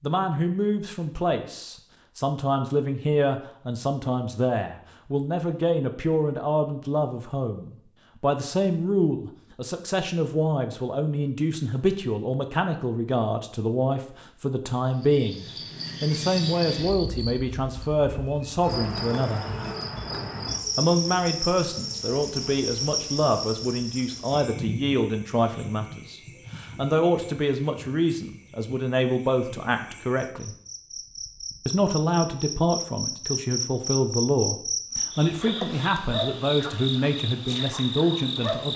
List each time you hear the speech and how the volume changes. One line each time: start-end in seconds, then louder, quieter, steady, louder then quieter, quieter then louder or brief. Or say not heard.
0.0-19.4 steady
20.8-30.6 steady
31.6-38.7 steady.